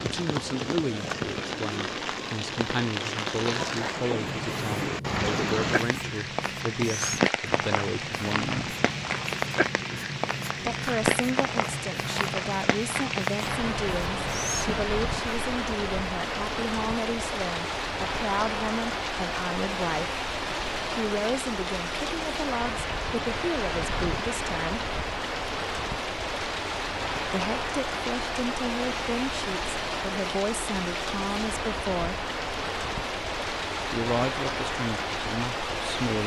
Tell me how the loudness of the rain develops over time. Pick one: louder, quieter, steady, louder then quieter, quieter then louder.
steady.